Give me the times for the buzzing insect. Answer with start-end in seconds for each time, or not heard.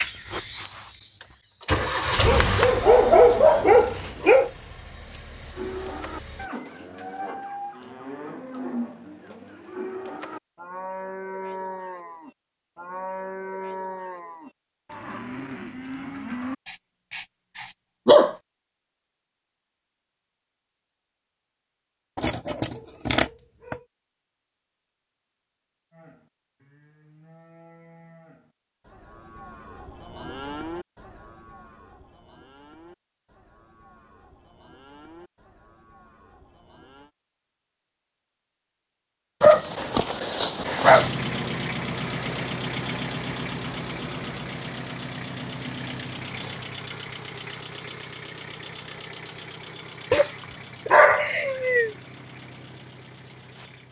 not heard.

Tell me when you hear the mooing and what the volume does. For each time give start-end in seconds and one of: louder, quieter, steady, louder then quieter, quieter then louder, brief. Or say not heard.
5.5-16.6 steady
25.9-37.1 louder then quieter.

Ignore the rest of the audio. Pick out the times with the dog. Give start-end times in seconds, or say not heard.
2.2-4.5, 16.6-18.4, 22.1-23.8, 39.4-41.1, 50.1-51.9.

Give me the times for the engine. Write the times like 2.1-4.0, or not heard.
0.0-6.5, 40.8-53.8.